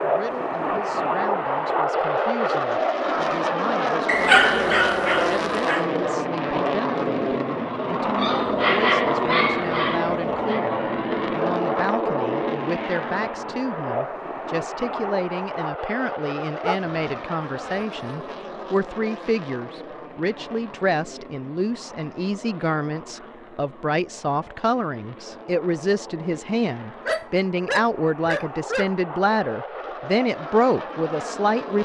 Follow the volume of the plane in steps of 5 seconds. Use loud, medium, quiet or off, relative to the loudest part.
loud, loud, loud, medium, quiet, quiet, medium.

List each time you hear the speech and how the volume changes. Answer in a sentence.
You can hear the speech from 0.0 to 31.7 s, getting louder.